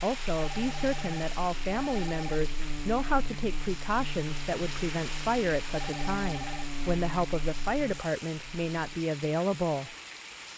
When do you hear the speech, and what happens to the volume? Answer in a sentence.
You can hear the speech from 0.0 to 9.9 s, at a steady volume.